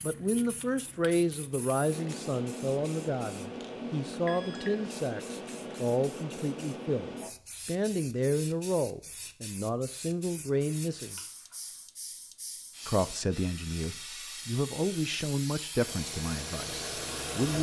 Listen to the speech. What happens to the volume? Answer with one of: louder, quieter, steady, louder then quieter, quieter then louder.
steady.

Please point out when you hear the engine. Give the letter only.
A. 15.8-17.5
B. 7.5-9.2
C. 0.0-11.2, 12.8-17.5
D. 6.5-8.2
A.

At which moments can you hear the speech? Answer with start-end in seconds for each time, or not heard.
0.0-11.2, 12.8-17.5.